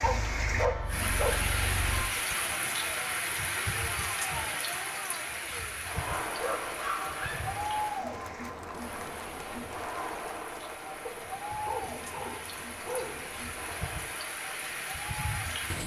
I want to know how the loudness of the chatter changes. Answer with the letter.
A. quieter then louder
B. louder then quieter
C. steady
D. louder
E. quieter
B.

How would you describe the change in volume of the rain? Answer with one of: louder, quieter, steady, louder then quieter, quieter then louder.
quieter then louder.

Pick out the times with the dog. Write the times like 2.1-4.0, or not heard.
0.0-2.0, 6.2-7.5, 11.1-13.4.